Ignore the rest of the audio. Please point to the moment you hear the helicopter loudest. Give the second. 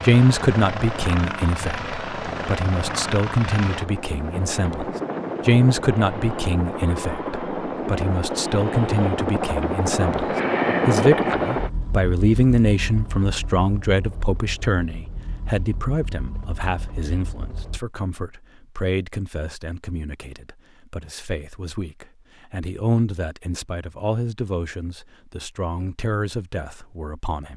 11 s.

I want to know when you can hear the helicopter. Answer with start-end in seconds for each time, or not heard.
0.0-17.8.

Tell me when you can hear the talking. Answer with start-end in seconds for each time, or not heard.
0.0-27.5.